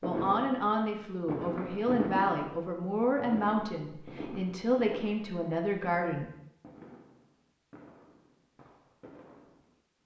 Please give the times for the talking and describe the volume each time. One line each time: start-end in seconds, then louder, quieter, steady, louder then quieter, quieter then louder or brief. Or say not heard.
0.0-6.3 steady.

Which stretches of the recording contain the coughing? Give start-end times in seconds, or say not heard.
not heard.